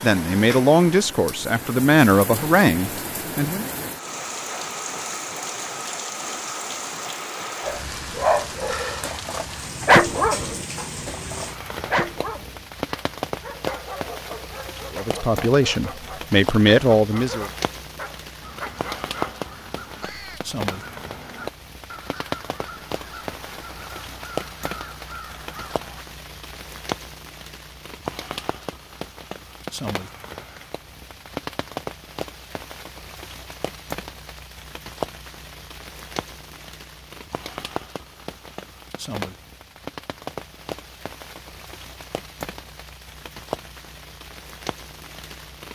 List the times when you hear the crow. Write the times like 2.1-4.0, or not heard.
18.4-26.1.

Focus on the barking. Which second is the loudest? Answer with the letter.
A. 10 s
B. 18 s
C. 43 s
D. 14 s
A.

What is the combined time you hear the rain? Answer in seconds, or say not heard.
46 s.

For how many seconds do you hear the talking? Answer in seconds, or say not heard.
6 s.